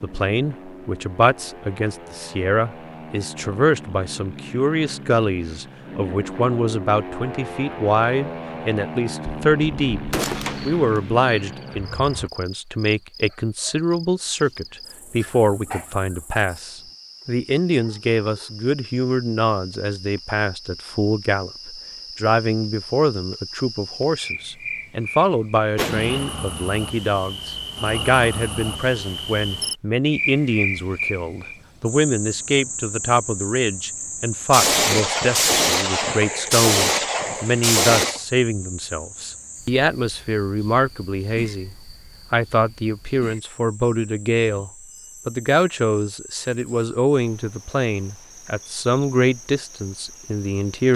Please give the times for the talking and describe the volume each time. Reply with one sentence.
The talking can be heard from 0.0 to 50.9 s, at a steady volume.